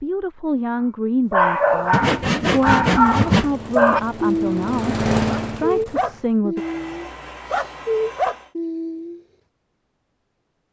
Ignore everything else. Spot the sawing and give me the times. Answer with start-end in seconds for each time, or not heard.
1.9-3.5, 6.5-8.6.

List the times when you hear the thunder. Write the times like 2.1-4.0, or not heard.
not heard.